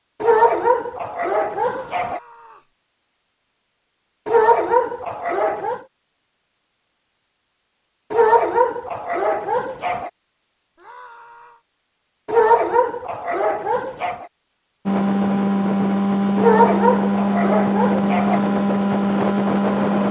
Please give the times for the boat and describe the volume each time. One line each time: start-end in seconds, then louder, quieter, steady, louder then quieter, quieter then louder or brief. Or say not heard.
14.8-20.0 steady.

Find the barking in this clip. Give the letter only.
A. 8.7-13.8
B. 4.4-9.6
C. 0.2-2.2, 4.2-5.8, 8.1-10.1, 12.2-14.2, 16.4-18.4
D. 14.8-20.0
C.